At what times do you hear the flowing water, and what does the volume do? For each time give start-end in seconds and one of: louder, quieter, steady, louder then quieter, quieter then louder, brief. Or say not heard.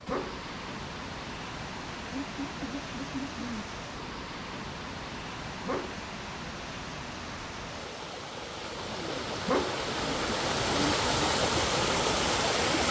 0.0-12.8 louder.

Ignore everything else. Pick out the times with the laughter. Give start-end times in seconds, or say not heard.
2.1-3.7.